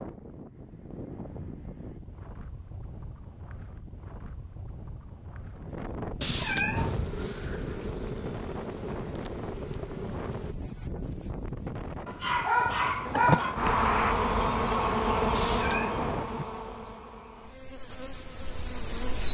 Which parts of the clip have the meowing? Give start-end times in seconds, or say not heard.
6.2-7.0, 15.3-16.4.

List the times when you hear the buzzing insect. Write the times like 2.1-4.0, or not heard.
6.8-10.6, 13.1-19.3.